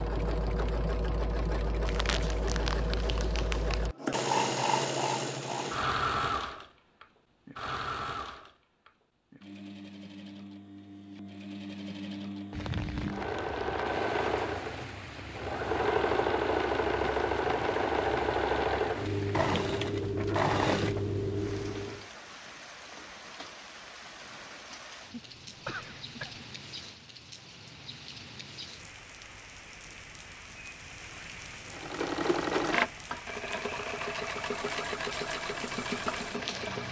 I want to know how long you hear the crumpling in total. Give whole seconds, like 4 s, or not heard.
2 s.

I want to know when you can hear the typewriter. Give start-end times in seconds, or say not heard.
not heard.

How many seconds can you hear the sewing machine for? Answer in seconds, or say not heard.
27 s.